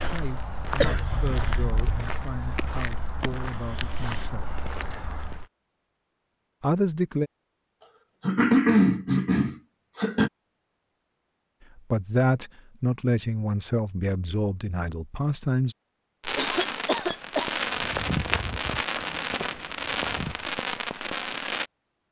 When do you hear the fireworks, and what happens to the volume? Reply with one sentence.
You can hear the fireworks from 16.2 to 21.7 s, at a steady volume.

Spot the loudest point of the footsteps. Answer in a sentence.
The loudest moment of the footsteps is at 18 seconds.